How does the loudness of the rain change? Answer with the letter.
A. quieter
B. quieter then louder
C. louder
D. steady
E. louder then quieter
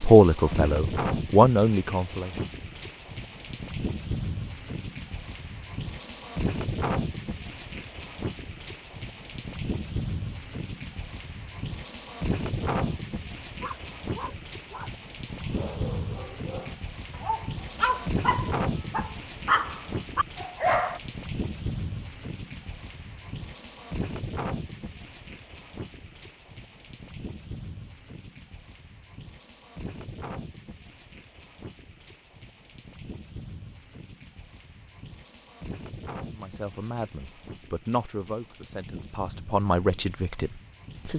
A.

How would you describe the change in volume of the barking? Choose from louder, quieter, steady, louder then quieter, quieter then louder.
louder.